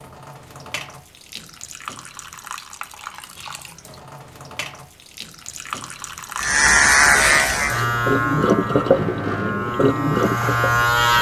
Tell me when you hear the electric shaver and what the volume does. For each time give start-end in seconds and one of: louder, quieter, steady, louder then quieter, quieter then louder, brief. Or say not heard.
6.3-11.1 quieter then louder.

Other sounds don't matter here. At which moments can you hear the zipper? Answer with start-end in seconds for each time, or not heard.
not heard.